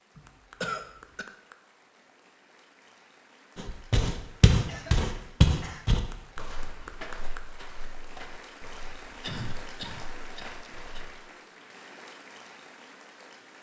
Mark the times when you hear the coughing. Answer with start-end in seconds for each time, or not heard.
0.1-1.2, 4.6-5.8, 9.2-11.0.